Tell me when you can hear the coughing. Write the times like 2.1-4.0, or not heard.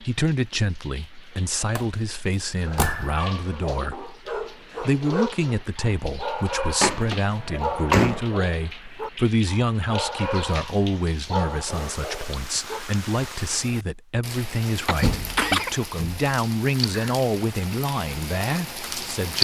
14.8-15.8.